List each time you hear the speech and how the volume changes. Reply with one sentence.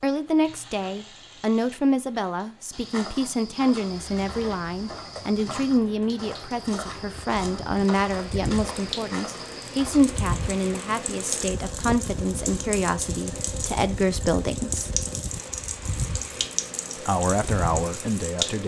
The speech can be heard from 0.0 to 14.9 s, at a steady volume; and briefly from 17.0 to 18.6 s.